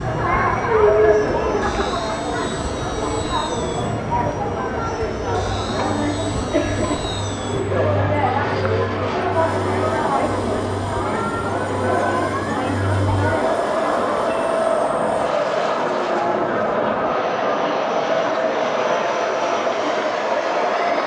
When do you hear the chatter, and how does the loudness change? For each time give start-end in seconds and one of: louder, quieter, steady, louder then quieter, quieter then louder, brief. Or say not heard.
0.0-21.0 steady.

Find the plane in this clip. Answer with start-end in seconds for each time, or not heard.
0.0-21.0.